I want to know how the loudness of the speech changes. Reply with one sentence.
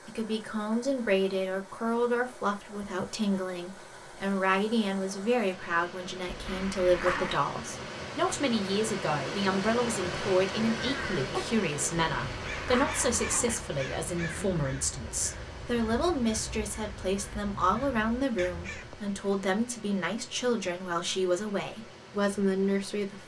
The volume of the speech stays about the same.